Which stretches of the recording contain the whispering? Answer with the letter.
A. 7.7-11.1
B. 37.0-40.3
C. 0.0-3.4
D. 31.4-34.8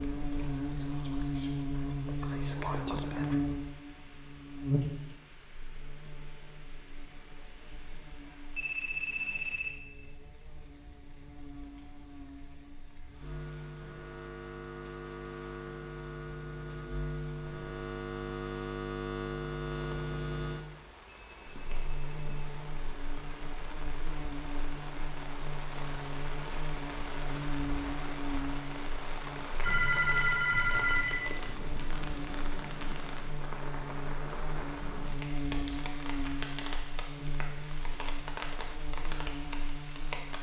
C.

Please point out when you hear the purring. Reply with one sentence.
You can't hear the purring here.